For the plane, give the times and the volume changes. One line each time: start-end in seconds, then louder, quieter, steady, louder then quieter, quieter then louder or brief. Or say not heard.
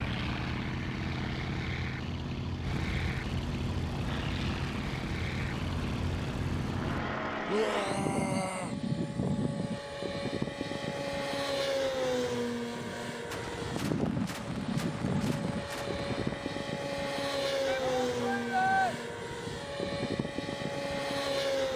0.0-21.7 steady.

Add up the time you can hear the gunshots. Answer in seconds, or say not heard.
3 s.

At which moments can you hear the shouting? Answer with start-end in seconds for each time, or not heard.
7.5-8.8, 17.6-18.9.